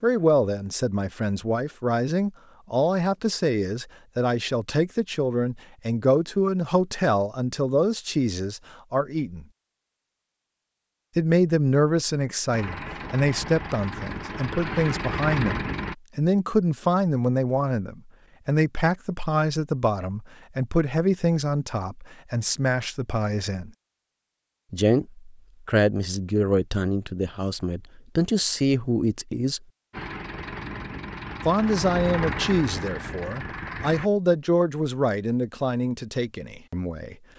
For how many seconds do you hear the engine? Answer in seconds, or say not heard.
8 s.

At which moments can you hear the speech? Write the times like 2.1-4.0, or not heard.
0.0-9.4, 11.2-23.7, 24.7-29.6, 31.4-37.1.